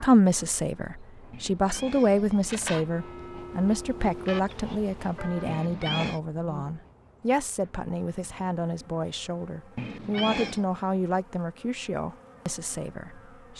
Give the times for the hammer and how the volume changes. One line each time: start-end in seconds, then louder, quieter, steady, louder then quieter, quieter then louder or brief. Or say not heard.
not heard.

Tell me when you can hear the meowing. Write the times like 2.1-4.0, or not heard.
1.3-2.9, 5.5-6.2, 9.8-10.7.